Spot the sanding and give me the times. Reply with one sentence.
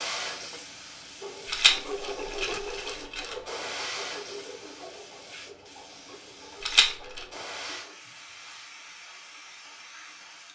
The sanding can be heard from 1.2 to 8.7 s.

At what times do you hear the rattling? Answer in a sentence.
The rattling can be heard from 1.4 to 3.4 s and from 6.6 to 7.2 s.